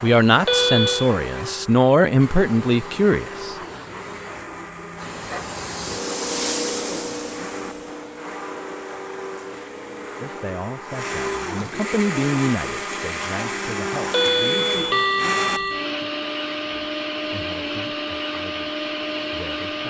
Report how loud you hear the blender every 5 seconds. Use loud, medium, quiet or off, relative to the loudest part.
medium, medium, loud, loud.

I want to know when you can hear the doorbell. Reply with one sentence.
The doorbell can be heard from 0.5 to 1.1 s and from 14.1 to 15.9 s.